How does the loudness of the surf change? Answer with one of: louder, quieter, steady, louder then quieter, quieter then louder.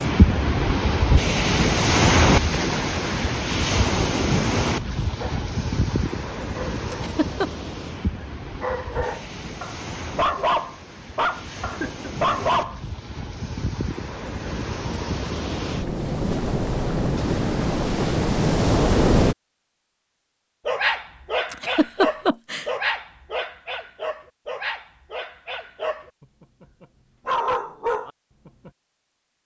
quieter then louder.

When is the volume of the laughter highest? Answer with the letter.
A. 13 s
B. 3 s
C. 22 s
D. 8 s
C.